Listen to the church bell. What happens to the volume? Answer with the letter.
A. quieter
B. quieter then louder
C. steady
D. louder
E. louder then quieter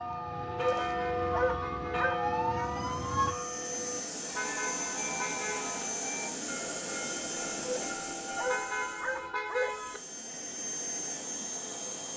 A.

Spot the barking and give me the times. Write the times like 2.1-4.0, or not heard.
0.6-2.2, 7.6-9.8.